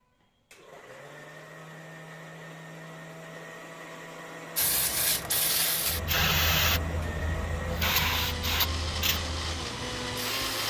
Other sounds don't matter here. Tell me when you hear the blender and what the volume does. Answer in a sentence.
The blender can be heard from 0.0 to 10.6 s, getting louder.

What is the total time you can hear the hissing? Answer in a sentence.
The hissing can be heard for 6 seconds in total.